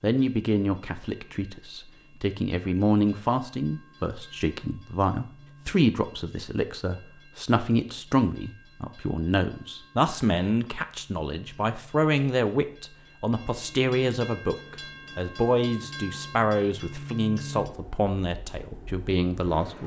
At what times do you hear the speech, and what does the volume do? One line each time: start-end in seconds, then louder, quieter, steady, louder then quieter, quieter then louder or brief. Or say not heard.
0.0-19.8 steady.